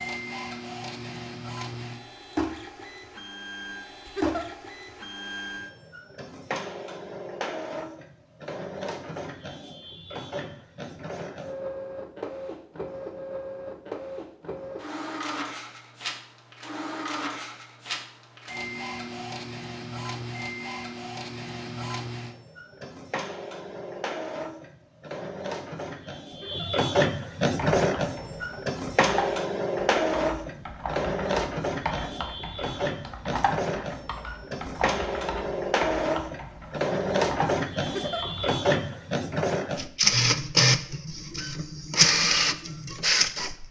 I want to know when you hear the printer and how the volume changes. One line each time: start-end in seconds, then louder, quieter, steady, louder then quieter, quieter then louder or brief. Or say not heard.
0.0-43.6 louder.